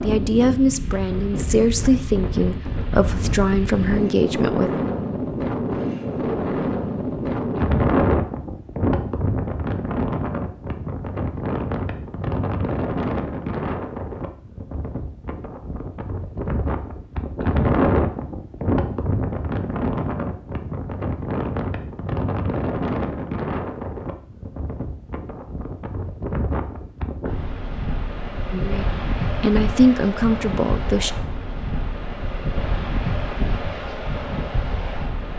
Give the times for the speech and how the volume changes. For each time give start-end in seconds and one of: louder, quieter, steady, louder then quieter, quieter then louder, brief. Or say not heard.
0.0-4.8 steady
28.5-31.1 brief.